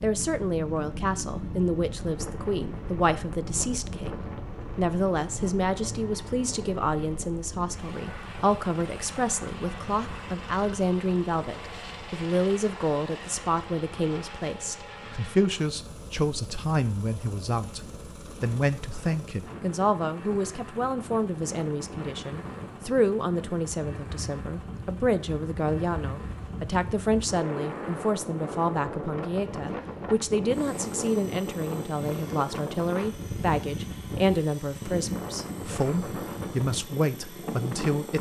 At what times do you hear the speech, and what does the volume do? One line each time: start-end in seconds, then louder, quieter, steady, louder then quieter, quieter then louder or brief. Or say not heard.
0.0-38.1 steady.